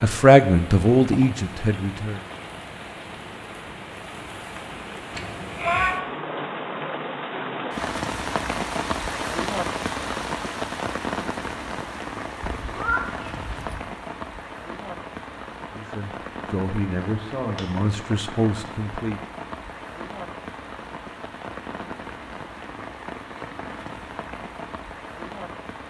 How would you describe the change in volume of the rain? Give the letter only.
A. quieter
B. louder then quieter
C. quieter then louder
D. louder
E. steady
B.